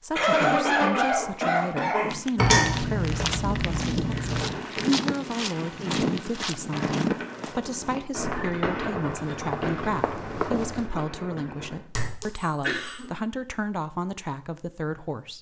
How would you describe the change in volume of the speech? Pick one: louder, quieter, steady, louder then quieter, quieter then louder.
steady.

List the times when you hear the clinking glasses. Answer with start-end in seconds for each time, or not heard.
2.4-4.5, 11.9-13.1.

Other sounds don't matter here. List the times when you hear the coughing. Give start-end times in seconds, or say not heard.
0.1-2.2, 12.6-13.1.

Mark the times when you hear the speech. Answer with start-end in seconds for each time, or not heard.
0.0-15.3.